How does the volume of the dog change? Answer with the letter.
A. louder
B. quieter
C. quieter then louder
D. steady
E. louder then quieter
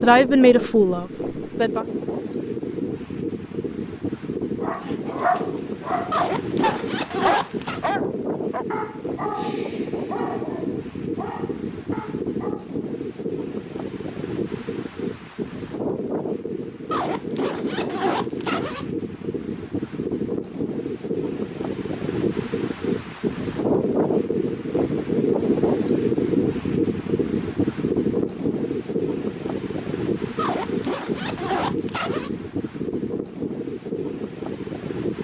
B.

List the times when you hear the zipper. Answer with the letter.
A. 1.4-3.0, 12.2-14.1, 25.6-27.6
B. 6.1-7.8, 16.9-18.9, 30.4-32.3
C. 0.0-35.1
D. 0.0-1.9
B.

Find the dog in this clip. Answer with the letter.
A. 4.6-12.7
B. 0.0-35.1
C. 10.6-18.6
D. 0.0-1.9
A.